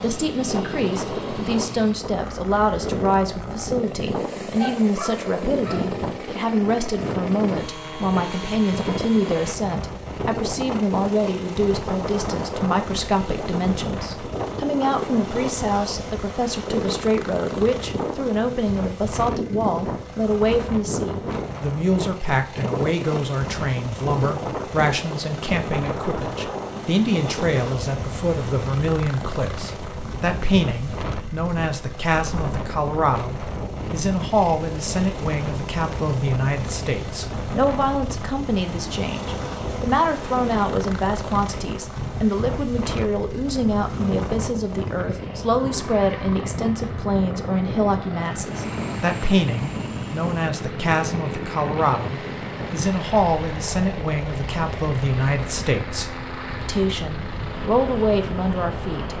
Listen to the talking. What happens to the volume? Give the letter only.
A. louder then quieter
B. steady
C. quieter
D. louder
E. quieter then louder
B.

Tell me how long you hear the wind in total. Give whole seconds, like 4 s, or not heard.
59 s.